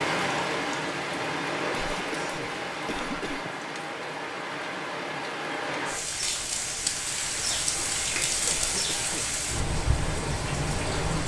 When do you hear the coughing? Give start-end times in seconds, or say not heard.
1.7-3.5, 8.4-9.3.